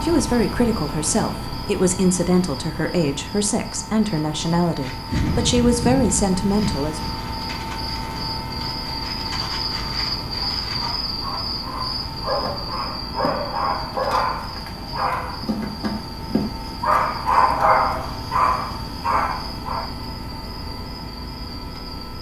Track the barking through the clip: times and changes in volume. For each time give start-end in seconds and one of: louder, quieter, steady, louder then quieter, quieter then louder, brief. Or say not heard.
10.2-19.9 louder.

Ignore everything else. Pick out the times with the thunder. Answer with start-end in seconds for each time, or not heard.
5.1-7.1.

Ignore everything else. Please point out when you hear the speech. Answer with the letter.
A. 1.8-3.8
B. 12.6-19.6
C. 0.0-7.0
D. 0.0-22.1
C.